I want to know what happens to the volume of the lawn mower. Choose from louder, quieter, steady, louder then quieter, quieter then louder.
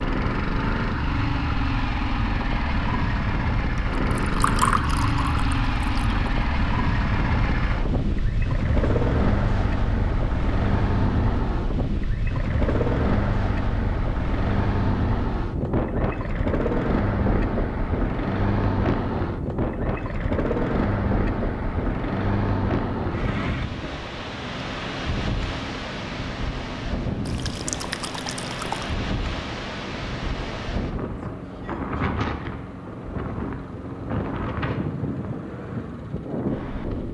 quieter.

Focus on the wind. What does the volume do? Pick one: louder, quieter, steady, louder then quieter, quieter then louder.
steady.